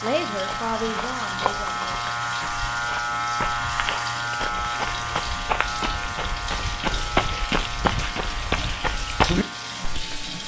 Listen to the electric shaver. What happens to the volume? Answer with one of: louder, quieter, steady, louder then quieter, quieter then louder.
quieter.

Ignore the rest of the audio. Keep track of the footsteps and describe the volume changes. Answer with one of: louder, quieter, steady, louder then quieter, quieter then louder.
louder.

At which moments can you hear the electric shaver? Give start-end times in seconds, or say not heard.
0.0-10.4.